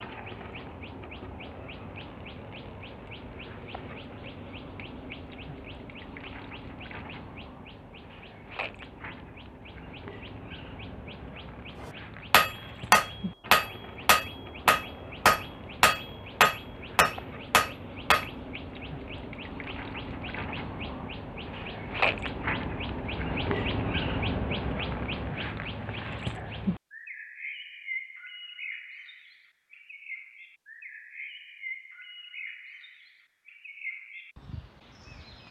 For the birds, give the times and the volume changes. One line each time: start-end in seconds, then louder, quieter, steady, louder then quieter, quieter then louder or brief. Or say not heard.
0.0-35.4 louder then quieter.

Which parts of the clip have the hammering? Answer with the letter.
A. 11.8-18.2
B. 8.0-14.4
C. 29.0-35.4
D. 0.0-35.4
A.